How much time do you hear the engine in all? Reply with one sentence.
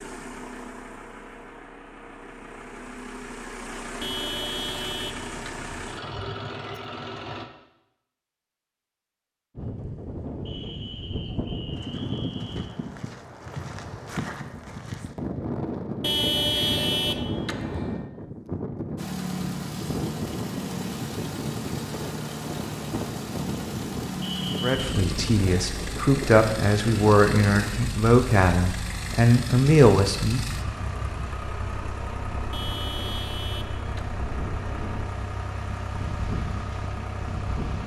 You can hear the engine for 26 seconds altogether.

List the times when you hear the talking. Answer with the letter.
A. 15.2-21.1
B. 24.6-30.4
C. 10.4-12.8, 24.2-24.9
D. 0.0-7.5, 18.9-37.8
B.